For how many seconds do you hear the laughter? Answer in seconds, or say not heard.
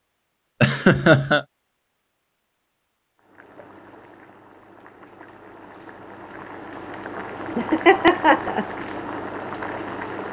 2 s.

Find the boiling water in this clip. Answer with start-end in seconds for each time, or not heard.
3.1-10.2.